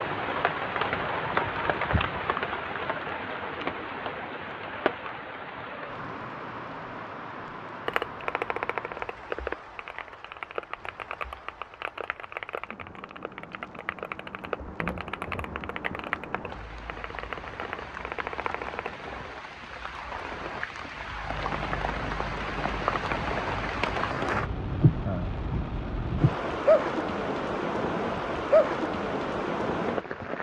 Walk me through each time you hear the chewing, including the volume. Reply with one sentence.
The chewing can't be heard in this clip.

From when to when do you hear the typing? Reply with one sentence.
The typing can be heard from 7.8 to 18.9 s.